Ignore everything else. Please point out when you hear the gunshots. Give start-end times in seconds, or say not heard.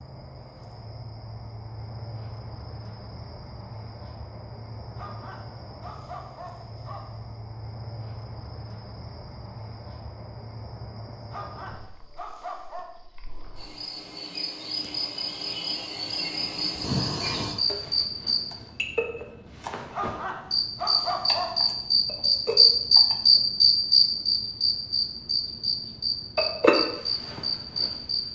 not heard.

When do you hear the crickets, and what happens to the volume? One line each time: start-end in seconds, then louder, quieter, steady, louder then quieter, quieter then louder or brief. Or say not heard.
0.0-28.2 louder.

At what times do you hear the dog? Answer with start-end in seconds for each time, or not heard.
5.0-7.0, 11.3-12.8, 19.9-21.5.